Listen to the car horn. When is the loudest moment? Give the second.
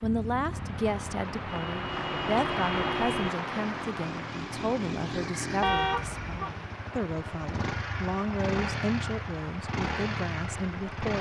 6 s.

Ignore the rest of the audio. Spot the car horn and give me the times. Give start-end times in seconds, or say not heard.
1.6-3.3, 5.6-6.5.